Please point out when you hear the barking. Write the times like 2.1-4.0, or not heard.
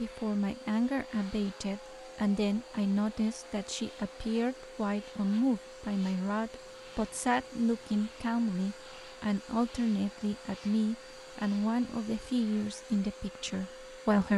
not heard.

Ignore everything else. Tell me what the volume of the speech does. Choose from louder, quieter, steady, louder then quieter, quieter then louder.
steady.